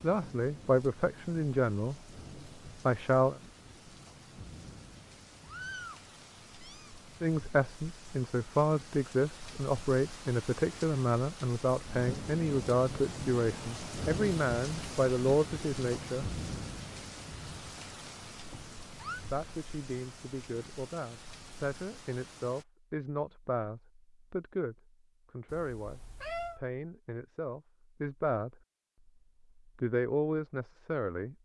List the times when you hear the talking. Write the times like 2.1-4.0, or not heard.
0.0-2.0, 2.9-3.4, 7.2-16.2, 19.3-28.6, 29.8-31.3.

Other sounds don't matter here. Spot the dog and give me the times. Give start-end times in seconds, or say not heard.
not heard.